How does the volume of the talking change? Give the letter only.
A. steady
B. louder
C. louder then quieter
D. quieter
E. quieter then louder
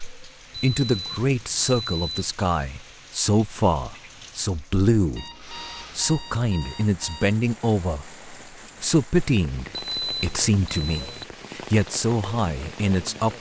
A.